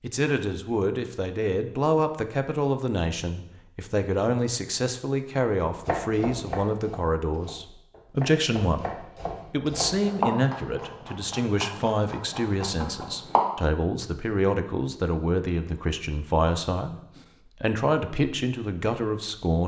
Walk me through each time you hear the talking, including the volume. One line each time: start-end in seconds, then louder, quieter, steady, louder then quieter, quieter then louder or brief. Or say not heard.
0.0-19.6 steady.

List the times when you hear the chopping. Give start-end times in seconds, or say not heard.
5.7-13.4.